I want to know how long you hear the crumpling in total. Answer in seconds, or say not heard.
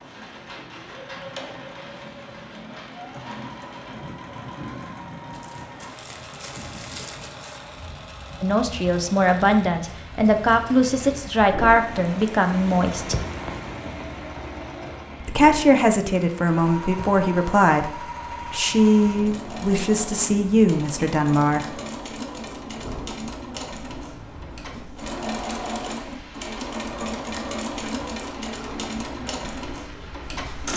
2 s.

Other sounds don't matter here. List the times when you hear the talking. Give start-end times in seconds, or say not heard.
8.4-13.2, 15.2-21.8.